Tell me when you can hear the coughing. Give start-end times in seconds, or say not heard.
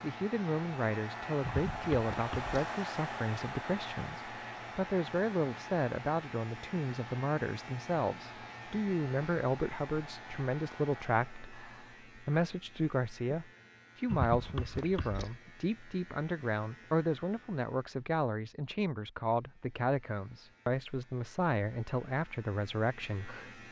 1.4-2.5, 14.1-15.3.